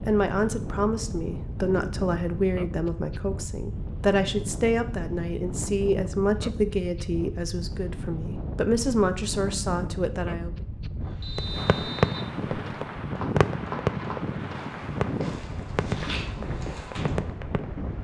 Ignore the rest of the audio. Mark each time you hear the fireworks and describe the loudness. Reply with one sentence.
The fireworks can be heard from 11.3 to 17.8 s, getting quieter.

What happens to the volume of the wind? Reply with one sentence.
The volume of the wind stays about the same.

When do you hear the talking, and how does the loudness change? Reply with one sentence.
You can hear the talking from 0.0 to 10.6 s, at a steady volume.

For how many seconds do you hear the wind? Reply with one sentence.
The wind can be heard for 18 seconds in total.